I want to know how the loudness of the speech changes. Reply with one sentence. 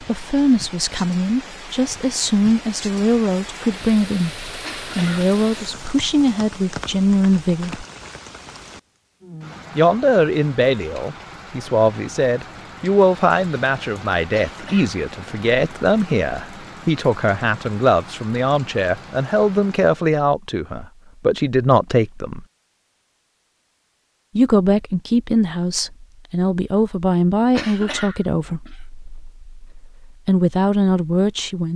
The volume of the speech stays about the same.